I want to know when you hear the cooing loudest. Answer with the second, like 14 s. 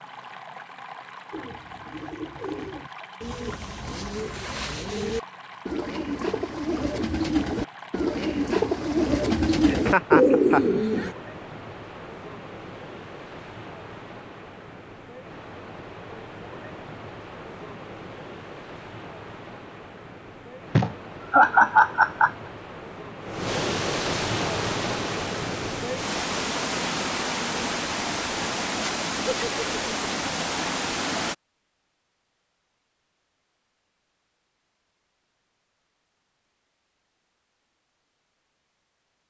10 s.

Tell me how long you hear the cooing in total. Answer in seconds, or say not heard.
10 s.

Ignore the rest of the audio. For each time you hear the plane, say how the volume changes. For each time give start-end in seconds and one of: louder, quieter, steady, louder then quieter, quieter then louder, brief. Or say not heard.
not heard.